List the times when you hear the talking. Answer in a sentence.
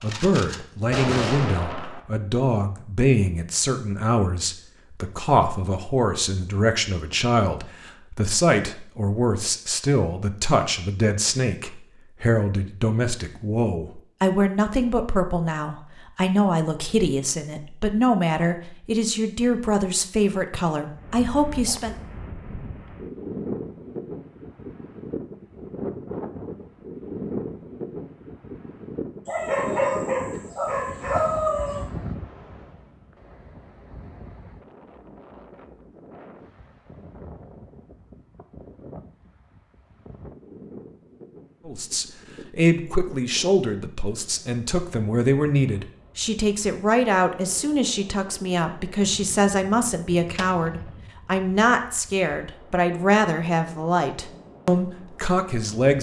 The talking can be heard from 0.0 to 21.9 s and from 41.6 to 55.9 s.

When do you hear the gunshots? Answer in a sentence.
The gunshots can be heard from 0.0 to 2.0 s and from 49.0 to 51.0 s.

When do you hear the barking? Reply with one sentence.
You can hear the barking from 29.2 to 31.9 s.